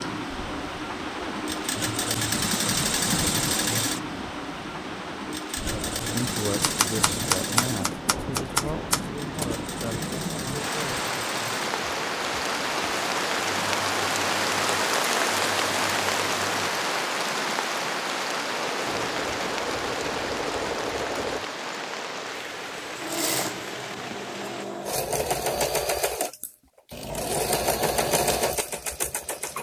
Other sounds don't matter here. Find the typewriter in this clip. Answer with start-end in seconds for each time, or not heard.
6.6-9.4, 18.9-21.5.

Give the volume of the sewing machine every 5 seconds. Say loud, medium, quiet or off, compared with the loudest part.
loud, medium, medium, medium, medium, loud.